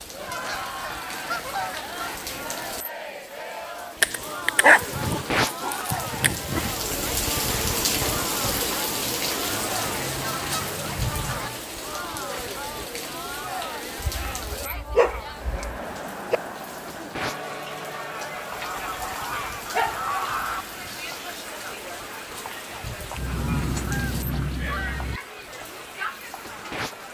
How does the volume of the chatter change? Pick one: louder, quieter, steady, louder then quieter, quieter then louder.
steady.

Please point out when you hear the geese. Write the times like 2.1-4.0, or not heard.
0.3-2.2, 4.8-6.8, 9.6-11.5, 14.0-15.8, 18.6-20.6, 23.1-25.2.